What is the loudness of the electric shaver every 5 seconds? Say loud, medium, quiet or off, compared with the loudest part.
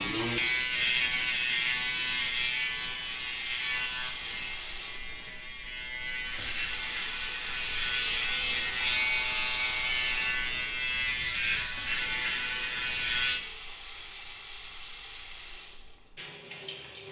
loud, loud, loud, off.